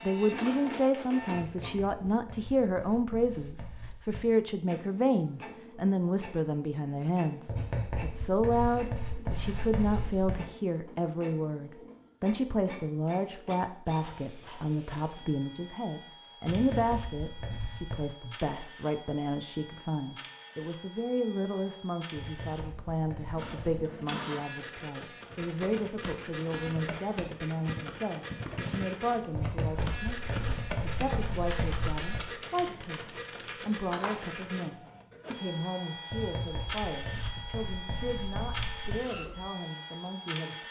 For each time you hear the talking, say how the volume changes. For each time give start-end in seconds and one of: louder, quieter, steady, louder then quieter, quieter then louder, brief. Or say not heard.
0.1-40.6 quieter.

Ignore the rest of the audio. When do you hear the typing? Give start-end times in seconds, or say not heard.
25.3-34.2.